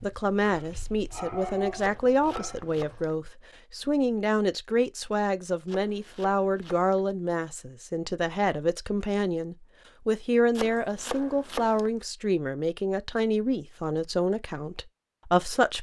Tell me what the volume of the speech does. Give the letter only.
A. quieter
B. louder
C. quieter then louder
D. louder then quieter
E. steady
E.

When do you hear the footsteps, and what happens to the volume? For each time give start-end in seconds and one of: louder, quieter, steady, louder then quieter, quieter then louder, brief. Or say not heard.
not heard.